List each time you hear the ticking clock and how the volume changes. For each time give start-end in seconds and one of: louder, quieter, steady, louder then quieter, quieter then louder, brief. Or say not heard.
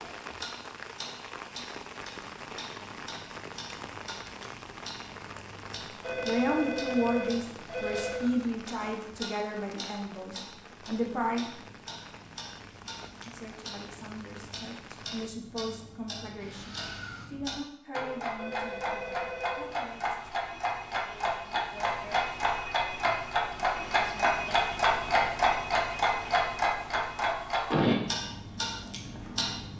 0.0-29.7 louder.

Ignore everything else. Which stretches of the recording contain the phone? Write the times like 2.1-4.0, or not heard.
6.0-8.4, 18.4-19.8.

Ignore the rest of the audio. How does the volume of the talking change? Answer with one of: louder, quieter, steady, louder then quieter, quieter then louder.
quieter.